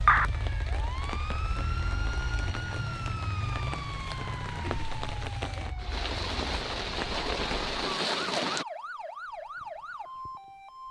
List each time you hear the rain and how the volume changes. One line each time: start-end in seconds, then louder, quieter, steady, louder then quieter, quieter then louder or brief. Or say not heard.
0.0-8.7 louder.